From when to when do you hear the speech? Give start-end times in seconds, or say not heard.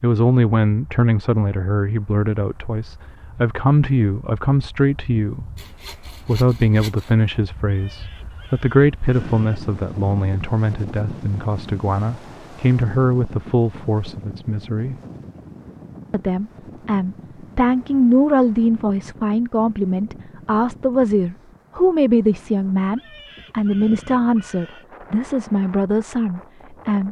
0.0-5.5, 6.2-14.9, 16.1-27.0.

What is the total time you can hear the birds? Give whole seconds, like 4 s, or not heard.
not heard.